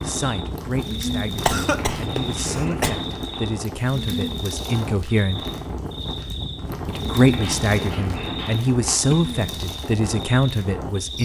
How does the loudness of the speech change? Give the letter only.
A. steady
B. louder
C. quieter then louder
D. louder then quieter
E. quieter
B.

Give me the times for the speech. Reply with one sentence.
The speech can be heard from 0.0 to 5.5 s and from 6.8 to 11.2 s.